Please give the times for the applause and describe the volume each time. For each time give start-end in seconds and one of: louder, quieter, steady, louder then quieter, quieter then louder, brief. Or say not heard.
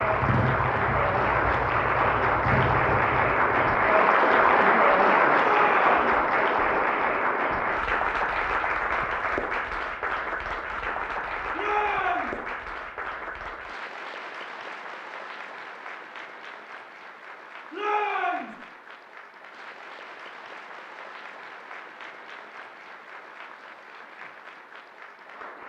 0.0-25.6 quieter.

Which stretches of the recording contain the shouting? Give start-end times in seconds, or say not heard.
5.3-6.1, 11.5-12.4, 17.7-18.6.